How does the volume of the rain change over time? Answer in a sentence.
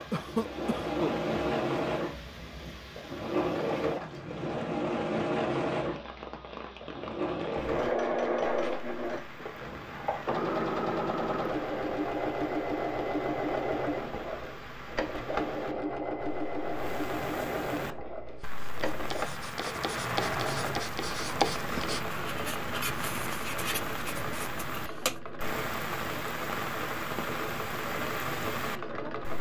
The loudness of the rain goes up.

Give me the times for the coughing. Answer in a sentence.
The coughing can be heard from 0.1 to 1.1 s.